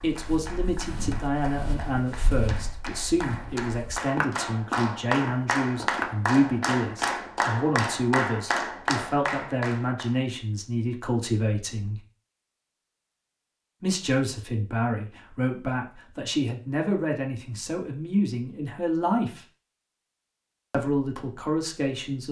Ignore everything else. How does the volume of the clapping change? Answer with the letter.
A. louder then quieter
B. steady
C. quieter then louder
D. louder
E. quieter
D.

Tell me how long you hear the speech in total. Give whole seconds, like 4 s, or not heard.
19 s.